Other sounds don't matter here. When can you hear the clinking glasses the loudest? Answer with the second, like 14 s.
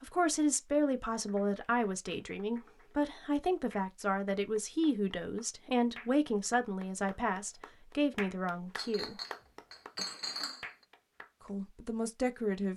10 s.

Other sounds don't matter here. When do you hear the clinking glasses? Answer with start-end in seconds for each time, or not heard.
8.8-10.7.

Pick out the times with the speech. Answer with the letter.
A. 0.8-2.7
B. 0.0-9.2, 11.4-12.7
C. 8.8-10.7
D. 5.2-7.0
B.